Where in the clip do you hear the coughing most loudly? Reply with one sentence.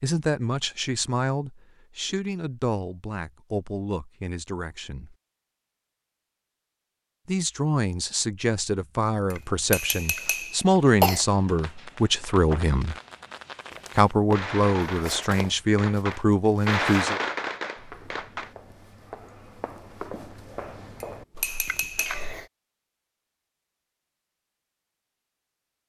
The loudest moment of the coughing is at 11 seconds.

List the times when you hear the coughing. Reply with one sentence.
The coughing can be heard from 9.3 to 11.2 s and from 21.6 to 22.5 s.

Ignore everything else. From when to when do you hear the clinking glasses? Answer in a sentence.
The clinking glasses can be heard from 9.3 to 10.7 s and from 21.0 to 22.4 s.